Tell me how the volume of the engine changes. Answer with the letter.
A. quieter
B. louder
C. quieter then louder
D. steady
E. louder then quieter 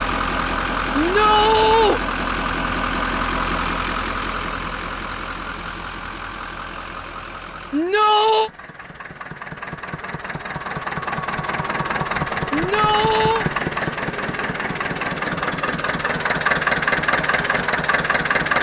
C.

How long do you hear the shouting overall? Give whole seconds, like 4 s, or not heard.
3 s.